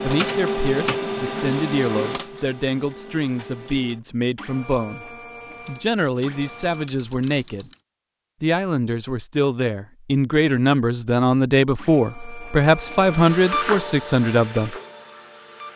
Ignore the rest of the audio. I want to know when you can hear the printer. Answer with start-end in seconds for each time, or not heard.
0.0-6.9, 11.8-15.7.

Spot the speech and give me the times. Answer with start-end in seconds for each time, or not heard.
0.0-7.7, 8.4-14.8.